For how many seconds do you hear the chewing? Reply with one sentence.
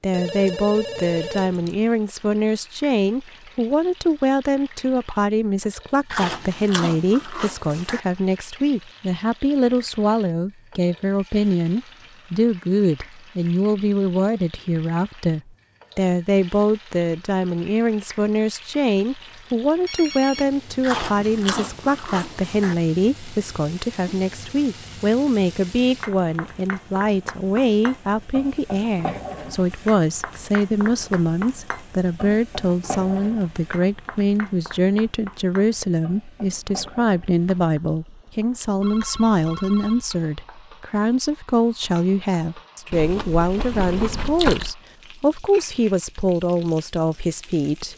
You can hear the chewing for 6 seconds altogether.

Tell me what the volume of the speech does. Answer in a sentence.
The loudness of the speech stays about the same.